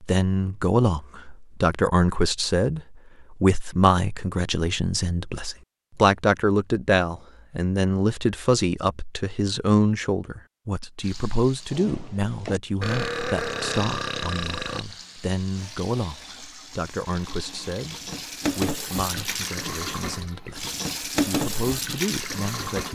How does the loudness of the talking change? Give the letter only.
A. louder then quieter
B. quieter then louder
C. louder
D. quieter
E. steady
D.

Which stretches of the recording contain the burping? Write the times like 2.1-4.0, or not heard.
12.8-14.8.